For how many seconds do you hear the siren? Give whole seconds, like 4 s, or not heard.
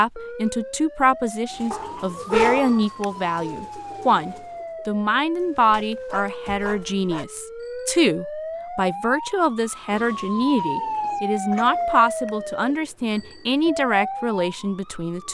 15 s.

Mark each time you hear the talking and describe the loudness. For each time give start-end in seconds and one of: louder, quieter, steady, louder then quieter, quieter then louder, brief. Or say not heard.
0.0-15.2 steady.